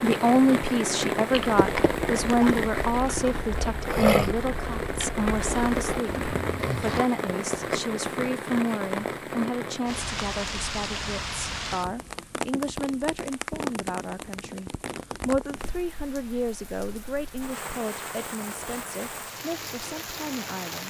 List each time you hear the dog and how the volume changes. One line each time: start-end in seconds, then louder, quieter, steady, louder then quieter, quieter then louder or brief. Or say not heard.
not heard.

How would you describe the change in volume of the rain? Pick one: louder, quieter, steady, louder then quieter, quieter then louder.
quieter.